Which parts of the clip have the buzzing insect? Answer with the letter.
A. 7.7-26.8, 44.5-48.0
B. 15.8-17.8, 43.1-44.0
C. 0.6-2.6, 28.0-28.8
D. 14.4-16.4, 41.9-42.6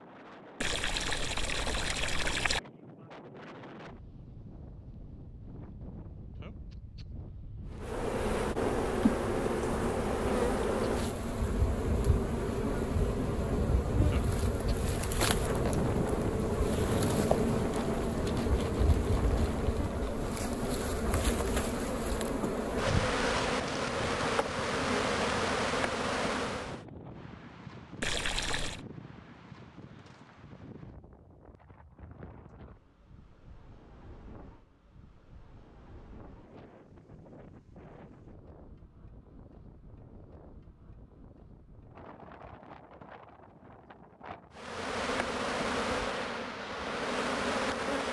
A.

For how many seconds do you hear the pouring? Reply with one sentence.
You can hear the pouring for 3 seconds altogether.